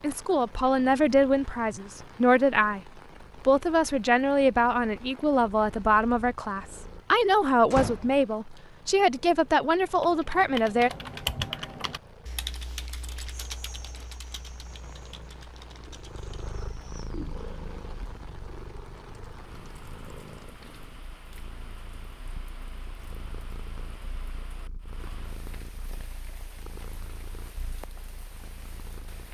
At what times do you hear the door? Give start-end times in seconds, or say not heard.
7.7-8.2.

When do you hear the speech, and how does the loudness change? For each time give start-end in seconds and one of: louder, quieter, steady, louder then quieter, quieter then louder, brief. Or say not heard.
0.0-2.8 brief
3.4-10.9 steady.